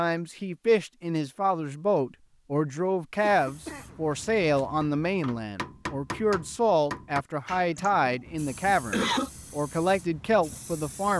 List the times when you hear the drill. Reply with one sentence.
The drill can't be heard in this clip.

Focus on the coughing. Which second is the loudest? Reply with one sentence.
The loudest moment of the coughing is at 9 seconds.